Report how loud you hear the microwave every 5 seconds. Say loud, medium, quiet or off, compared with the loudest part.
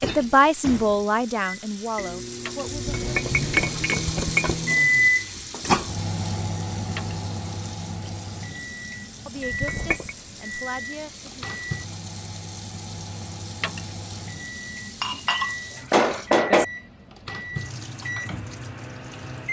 loud, loud, medium, medium.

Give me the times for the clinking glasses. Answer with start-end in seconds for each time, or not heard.
2.8-4.5, 9.5-10.2, 15.0-16.6.